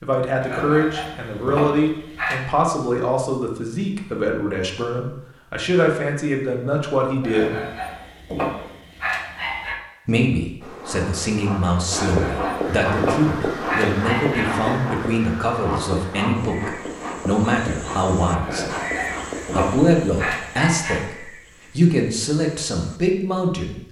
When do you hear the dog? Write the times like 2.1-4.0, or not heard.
0.4-2.5, 7.2-9.8, 11.9-14.7, 18.4-21.1.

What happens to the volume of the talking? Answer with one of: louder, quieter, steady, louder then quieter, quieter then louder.
steady.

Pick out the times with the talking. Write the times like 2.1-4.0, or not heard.
0.0-7.6, 10.1-18.8, 19.6-23.8.